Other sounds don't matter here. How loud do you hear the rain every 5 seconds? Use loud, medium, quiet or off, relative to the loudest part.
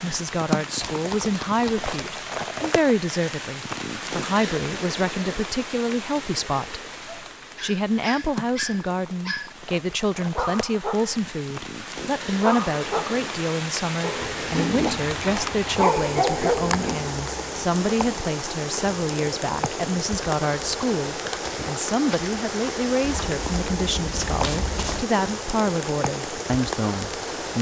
loud, medium, loud, loud, loud, loud.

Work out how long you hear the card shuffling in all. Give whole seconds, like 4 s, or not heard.
3 s.